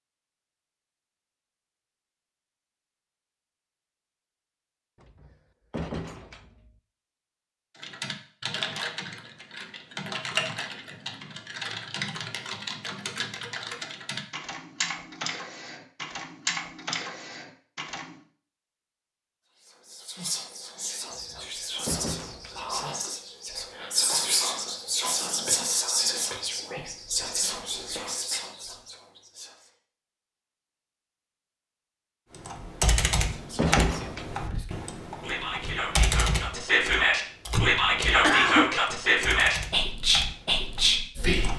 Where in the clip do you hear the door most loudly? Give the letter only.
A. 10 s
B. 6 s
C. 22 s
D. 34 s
D.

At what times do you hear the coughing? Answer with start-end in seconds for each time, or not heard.
37.5-38.7.